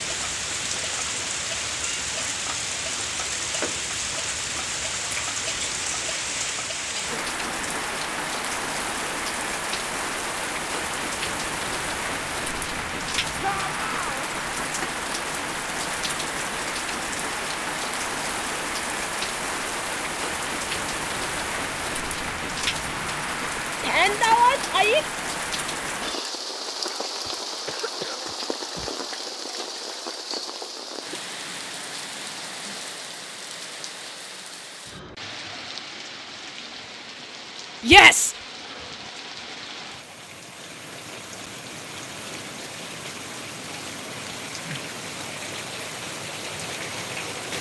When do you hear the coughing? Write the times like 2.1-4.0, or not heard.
27.2-28.9.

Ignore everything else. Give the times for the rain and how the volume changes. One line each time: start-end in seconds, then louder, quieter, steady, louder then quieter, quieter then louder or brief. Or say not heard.
0.0-47.5 quieter.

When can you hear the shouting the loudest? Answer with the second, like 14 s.
38 s.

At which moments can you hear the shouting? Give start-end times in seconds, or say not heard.
13.4-14.3, 23.8-25.1, 37.9-38.3.